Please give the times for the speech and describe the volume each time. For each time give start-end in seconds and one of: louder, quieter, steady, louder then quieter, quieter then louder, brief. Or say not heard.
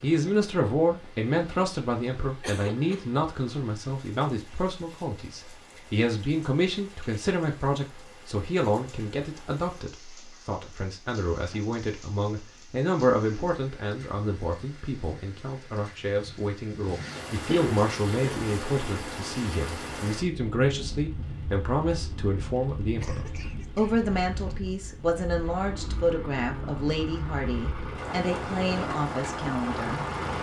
0.0-30.3 steady.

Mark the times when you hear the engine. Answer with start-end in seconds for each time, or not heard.
25.4-30.3.